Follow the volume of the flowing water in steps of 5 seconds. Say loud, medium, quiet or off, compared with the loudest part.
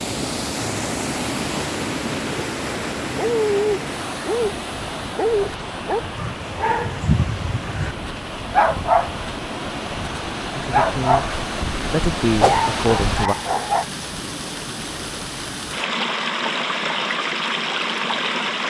loud, medium, loud, loud.